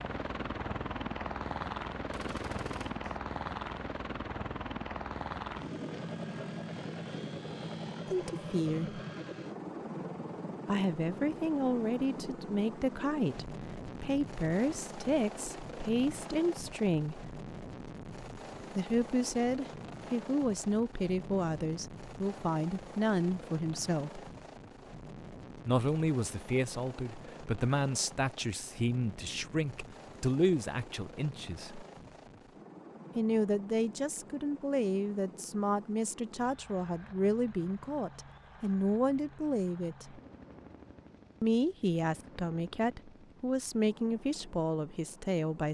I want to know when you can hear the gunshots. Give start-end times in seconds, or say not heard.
2.0-3.1.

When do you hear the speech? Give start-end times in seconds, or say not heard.
8.1-9.0, 10.7-17.3, 18.8-24.2, 25.6-31.9, 33.1-40.2, 41.4-45.6.